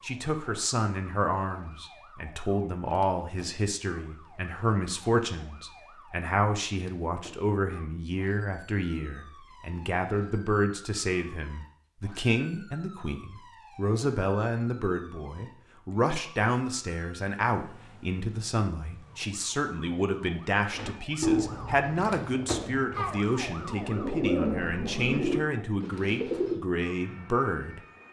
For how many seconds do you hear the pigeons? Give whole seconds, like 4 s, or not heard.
6 s.